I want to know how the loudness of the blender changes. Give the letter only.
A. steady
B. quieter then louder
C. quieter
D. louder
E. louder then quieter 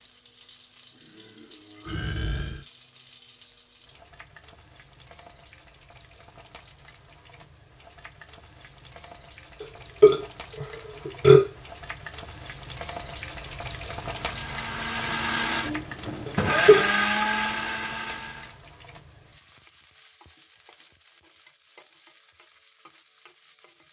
E.